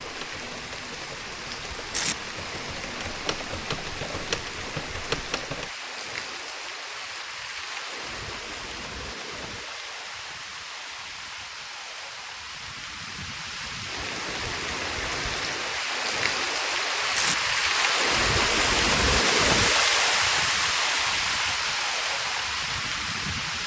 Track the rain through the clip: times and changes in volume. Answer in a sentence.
The rain can be heard from 0.0 to 23.6 s, getting louder.